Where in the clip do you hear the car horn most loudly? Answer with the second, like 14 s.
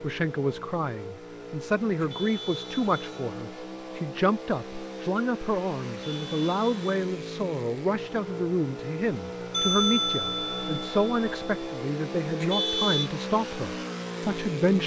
13 s.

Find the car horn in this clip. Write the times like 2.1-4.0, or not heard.
2.0-3.2, 6.0-6.9, 12.4-13.1.